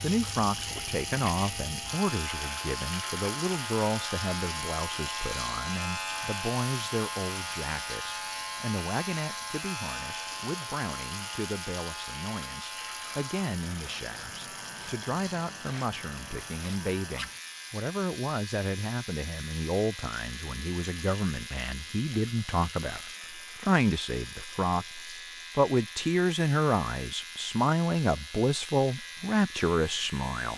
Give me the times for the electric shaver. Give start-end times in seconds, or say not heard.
0.0-30.5.